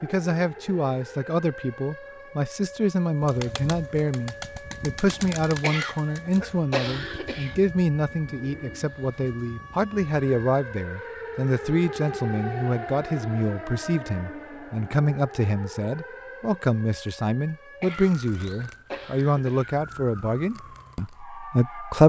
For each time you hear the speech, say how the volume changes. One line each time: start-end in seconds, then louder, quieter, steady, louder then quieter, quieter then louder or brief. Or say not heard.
0.0-22.0 steady.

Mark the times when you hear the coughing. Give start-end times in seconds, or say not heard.
5.6-7.5, 17.8-19.8.